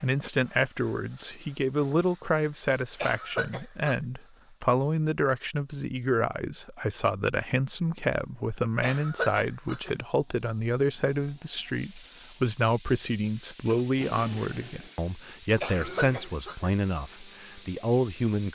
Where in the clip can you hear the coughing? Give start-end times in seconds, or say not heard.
3.0-4.0, 8.8-9.9, 15.6-16.7.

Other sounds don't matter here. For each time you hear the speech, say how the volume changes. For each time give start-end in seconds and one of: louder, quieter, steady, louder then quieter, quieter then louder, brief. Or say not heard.
0.0-18.4 steady.